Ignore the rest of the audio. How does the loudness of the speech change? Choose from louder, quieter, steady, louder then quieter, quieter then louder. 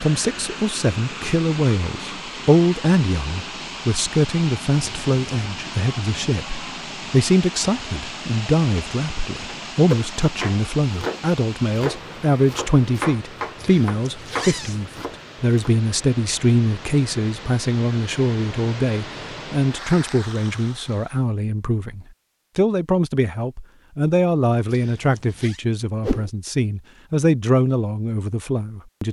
steady.